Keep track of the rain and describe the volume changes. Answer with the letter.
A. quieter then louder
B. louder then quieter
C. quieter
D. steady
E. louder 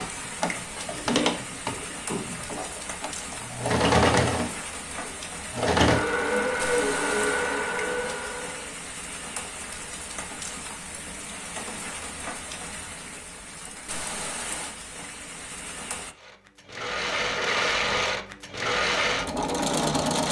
D.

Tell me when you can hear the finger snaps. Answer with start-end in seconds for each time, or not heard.
not heard.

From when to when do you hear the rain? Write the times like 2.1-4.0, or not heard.
0.0-16.1.